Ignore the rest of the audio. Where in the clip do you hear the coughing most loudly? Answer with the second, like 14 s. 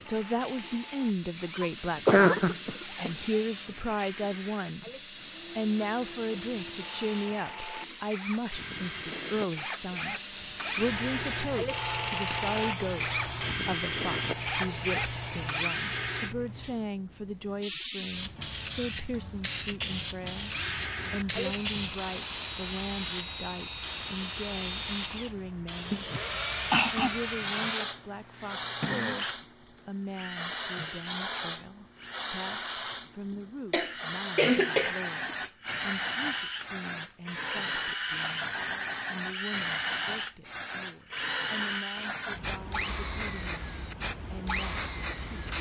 2 s.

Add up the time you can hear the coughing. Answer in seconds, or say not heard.
5 s.